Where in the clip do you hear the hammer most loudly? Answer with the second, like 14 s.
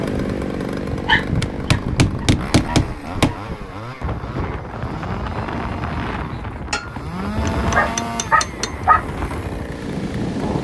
3 s.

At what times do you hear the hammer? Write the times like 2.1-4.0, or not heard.
1.4-3.4, 6.7-8.7.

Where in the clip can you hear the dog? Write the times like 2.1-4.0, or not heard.
1.1-3.4, 7.8-9.1.